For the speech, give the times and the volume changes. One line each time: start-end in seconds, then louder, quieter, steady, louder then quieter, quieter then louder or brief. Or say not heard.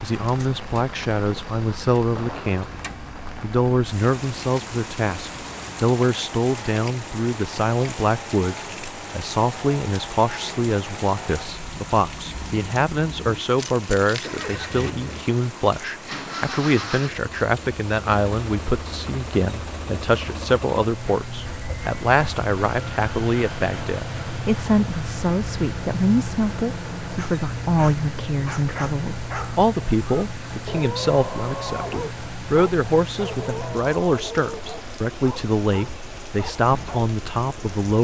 0.0-2.7 brief
3.4-38.0 steady.